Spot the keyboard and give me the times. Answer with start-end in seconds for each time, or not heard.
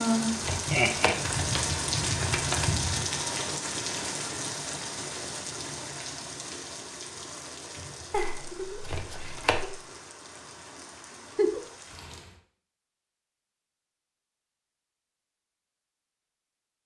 not heard.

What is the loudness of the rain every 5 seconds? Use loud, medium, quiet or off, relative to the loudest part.
loud, medium, quiet, off.